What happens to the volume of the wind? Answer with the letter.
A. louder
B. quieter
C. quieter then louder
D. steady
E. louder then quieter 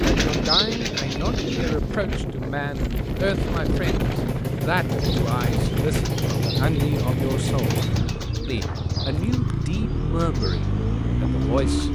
B.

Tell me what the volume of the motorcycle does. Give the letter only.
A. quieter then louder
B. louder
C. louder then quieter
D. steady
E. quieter
B.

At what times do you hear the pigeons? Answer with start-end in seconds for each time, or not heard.
0.0-1.8, 4.8-11.9.